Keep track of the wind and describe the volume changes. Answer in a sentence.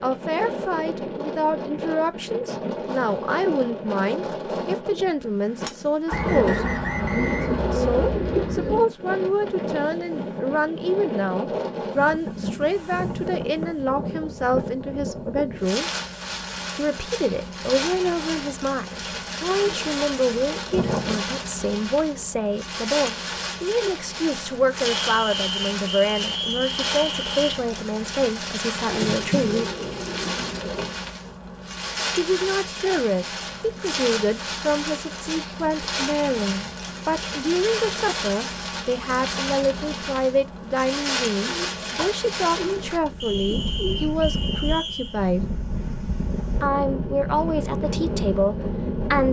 The volume of the wind stays about the same.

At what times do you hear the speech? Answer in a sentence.
The speech can be heard from 0.0 to 6.7 s, from 7.7 to 15.9 s, from 16.8 to 29.7 s, from 32.1 to 45.5 s and from 46.6 to 49.2 s.